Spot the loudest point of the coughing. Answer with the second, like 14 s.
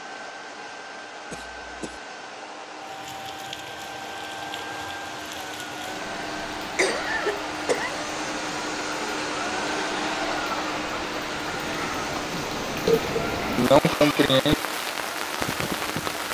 14 s.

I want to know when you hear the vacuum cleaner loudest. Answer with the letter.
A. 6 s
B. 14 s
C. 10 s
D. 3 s
C.